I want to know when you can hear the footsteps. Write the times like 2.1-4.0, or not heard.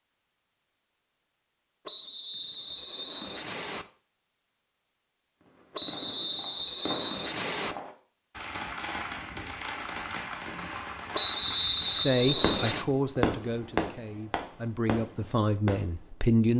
not heard.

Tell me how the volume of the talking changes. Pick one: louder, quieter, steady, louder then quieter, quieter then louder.
quieter then louder.